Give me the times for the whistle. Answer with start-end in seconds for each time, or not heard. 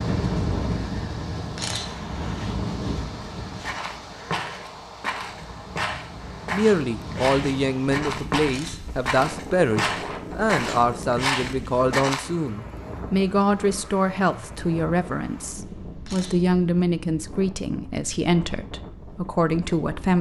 not heard.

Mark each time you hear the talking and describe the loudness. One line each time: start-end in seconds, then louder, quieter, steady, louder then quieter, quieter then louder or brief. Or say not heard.
6.5-20.1 steady.